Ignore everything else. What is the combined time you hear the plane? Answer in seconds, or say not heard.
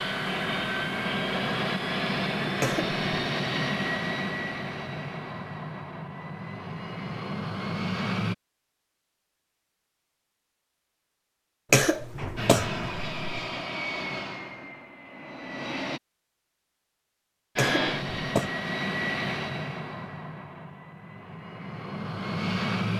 17 s.